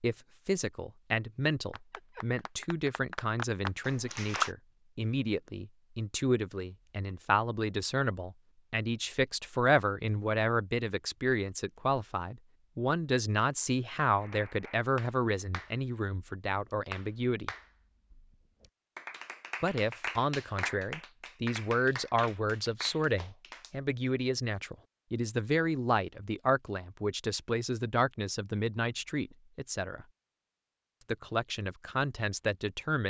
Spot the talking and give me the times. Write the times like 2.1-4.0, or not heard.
0.0-17.6, 19.6-30.1, 31.1-33.0.